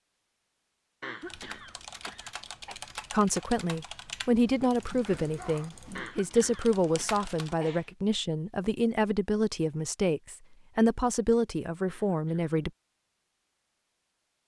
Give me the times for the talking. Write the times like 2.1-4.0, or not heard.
3.1-12.7.